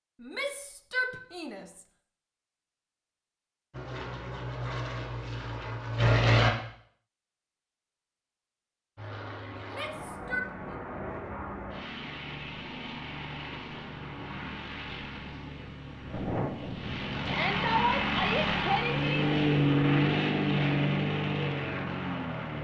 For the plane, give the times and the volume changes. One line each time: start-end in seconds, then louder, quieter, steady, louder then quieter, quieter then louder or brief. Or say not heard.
3.7-6.5 brief
8.9-22.5 louder.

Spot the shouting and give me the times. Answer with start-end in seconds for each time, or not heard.
0.2-1.8, 9.7-10.5, 17.2-19.2.